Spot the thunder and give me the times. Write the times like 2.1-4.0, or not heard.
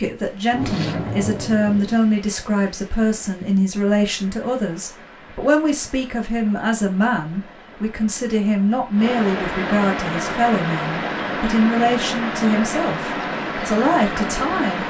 0.5-1.9.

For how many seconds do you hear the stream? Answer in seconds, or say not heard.
15 s.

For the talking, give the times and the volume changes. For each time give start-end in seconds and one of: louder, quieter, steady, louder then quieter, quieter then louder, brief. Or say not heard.
0.0-14.8 steady.